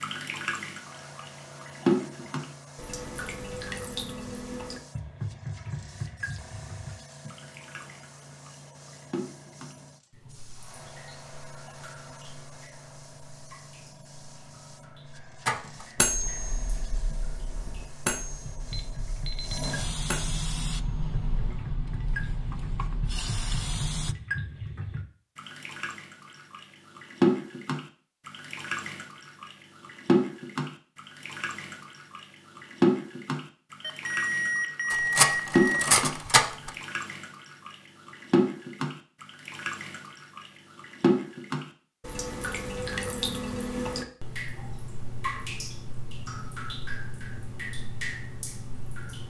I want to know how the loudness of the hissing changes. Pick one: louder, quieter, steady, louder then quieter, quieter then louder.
louder.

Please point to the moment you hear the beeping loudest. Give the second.
35 s.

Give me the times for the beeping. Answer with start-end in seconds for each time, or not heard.
18.6-19.8, 33.8-35.9.